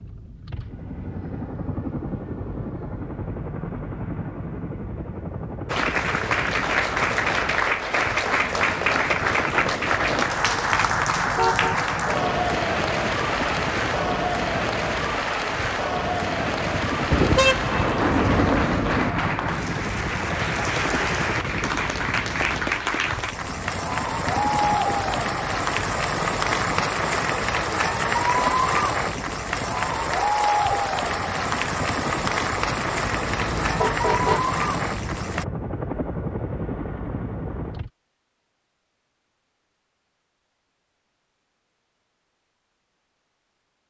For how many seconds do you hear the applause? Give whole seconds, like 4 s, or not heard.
30 s.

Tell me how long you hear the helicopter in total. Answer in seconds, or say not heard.
38 s.